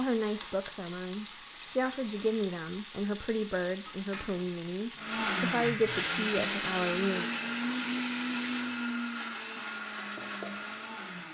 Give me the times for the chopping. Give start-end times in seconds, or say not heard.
not heard.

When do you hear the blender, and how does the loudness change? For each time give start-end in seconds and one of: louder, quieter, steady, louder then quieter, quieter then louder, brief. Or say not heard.
5.0-11.2 quieter.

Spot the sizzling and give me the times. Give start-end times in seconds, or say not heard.
0.0-8.8.